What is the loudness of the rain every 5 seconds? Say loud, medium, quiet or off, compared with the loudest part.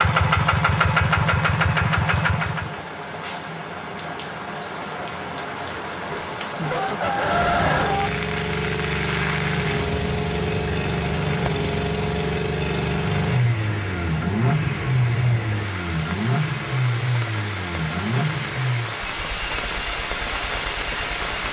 medium, loud, medium, loud, loud.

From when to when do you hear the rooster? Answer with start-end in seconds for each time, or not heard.
6.1-8.1.